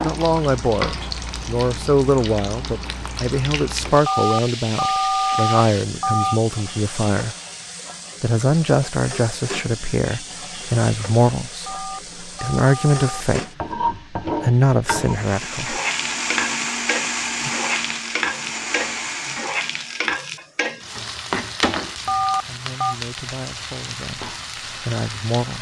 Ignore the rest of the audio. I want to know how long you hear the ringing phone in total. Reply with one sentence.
You can hear the ringing phone for 5 seconds altogether.